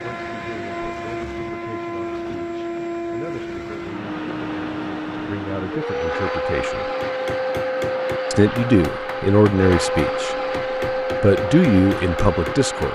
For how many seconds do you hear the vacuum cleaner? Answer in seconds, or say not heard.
13 s.